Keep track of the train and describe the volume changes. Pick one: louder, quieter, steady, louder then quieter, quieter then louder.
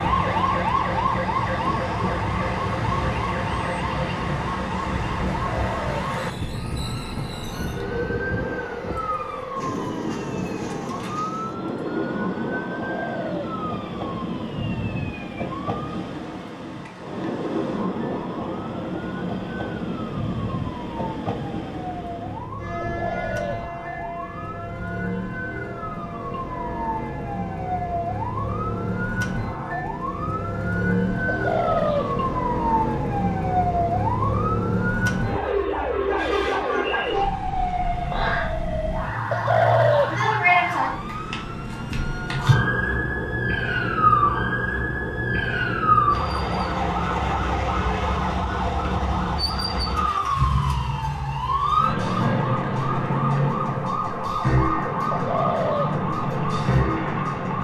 quieter.